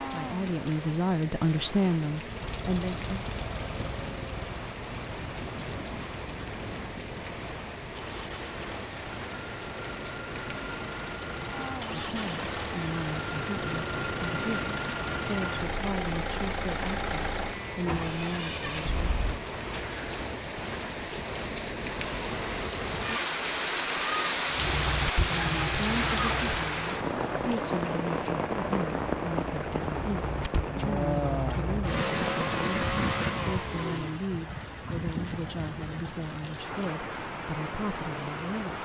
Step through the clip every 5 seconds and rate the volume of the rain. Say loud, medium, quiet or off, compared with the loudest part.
medium, medium, medium, medium, loud, loud, medium, medium.